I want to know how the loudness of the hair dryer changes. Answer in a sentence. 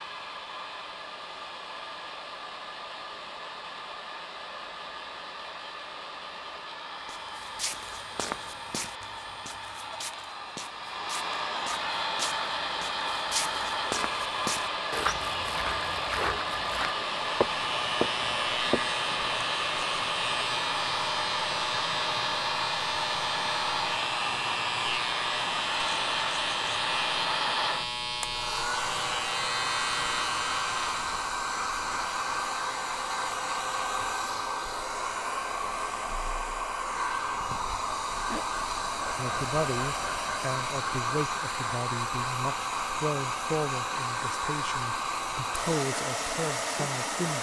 The loudness of the hair dryer goes up.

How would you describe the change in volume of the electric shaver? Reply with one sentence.
The volume of the electric shaver stays about the same.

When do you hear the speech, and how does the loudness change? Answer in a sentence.
You can hear the speech from 39.1 to 47.3 s, getting quieter then louder.